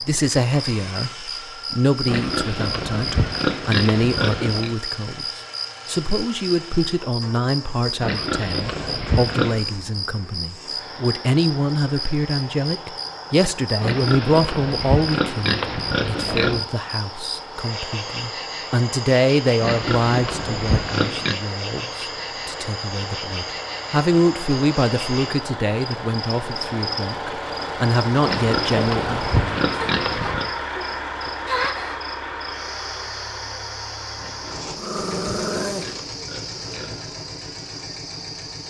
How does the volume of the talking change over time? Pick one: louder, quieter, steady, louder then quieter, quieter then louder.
steady.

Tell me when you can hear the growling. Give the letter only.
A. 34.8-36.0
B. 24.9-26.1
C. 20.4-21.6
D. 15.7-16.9
A.